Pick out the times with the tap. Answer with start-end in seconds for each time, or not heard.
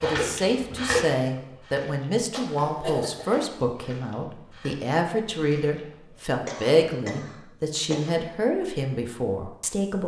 0.0-6.2.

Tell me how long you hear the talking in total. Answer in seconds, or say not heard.
10 s.